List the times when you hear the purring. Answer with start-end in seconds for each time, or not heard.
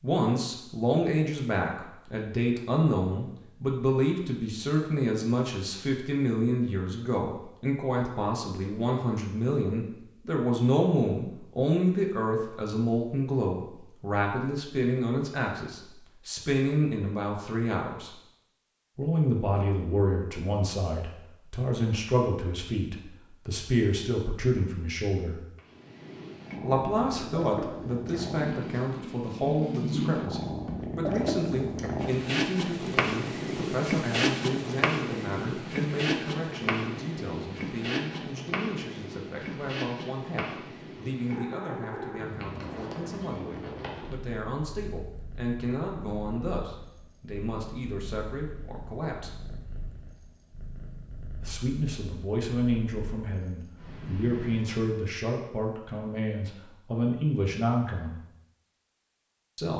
25.6-54.9.